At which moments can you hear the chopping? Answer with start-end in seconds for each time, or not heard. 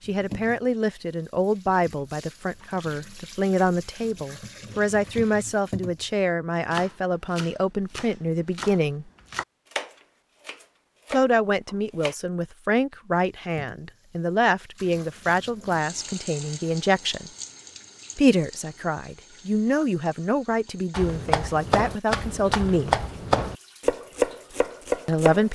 6.7-12.2, 20.9-25.5.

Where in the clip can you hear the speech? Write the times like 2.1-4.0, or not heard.
0.1-9.1, 11.1-17.3, 18.1-22.9, 25.1-25.5.